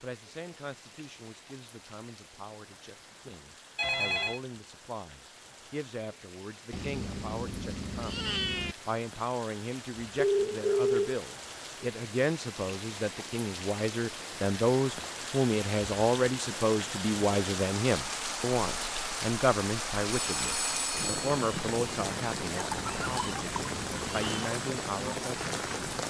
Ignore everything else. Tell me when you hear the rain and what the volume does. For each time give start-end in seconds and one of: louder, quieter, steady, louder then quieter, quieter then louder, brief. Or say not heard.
0.0-26.0 louder.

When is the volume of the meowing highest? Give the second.
8 s.